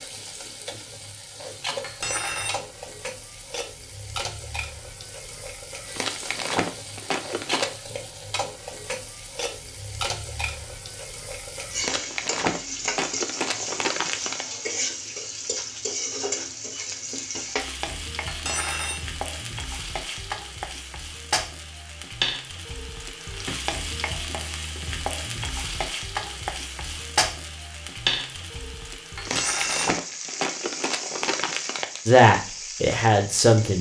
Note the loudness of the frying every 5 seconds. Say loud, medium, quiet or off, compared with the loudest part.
medium, medium, loud, loud, loud, loud, medium.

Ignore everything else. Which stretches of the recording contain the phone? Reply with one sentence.
The phone can't be heard in this clip.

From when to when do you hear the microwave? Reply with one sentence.
You can't hear the microwave here.